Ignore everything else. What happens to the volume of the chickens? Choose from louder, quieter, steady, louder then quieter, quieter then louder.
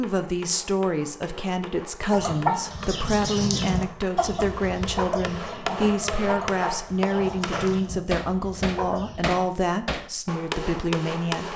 quieter.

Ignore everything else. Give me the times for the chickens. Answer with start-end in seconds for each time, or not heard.
2.1-9.4.